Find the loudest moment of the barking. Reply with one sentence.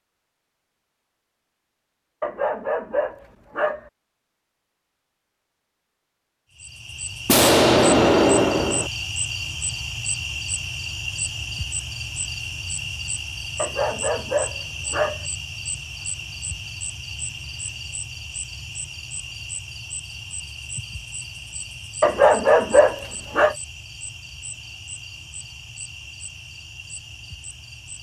The loudest moment of the barking is at 22 seconds.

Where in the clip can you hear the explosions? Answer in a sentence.
You can hear the explosions from 7.2 to 8.9 s.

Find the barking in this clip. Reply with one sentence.
You can hear the barking from 2.2 to 3.9 s, from 13.6 to 15.2 s and from 22.0 to 23.6 s.